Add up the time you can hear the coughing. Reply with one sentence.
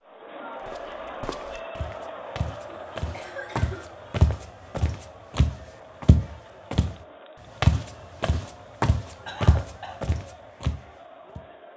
You can hear the coughing for 2 seconds altogether.